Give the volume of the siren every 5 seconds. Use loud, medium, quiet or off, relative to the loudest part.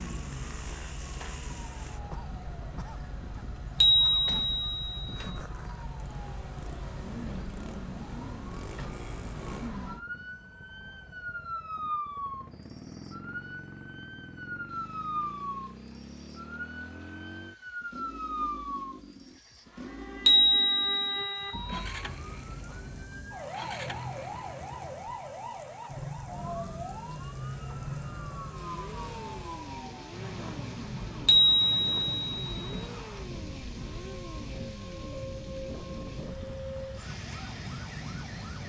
medium, loud, loud, loud, loud, loud, loud, loud.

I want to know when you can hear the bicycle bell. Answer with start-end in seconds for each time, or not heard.
3.8-5.3, 20.2-21.8, 31.2-32.9.